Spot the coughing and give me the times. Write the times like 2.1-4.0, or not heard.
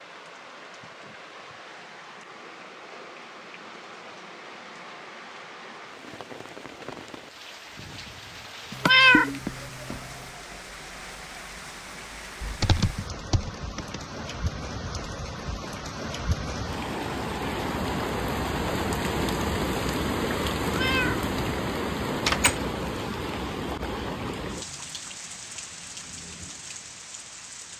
not heard.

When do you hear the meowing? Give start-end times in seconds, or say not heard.
8.7-10.0, 20.8-21.2, 22.2-22.6.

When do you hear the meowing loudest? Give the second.
9 s.